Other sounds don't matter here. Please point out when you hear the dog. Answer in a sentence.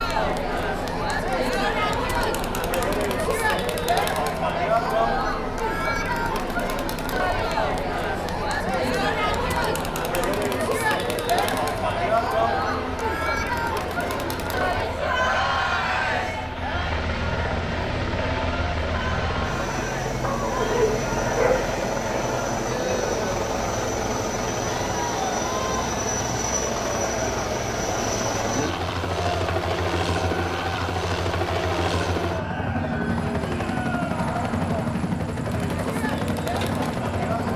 The dog can be heard from 20.2 to 21.6 s.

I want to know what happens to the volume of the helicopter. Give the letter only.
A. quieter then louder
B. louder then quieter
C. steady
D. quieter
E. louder
E.